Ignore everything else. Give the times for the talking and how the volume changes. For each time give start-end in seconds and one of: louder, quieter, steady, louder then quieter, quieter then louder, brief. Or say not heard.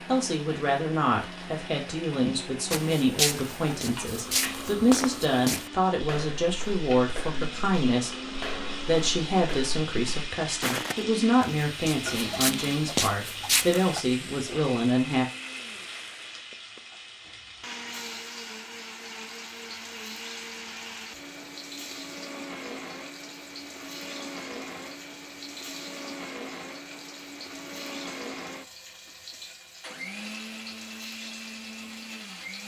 0.1-15.2 steady.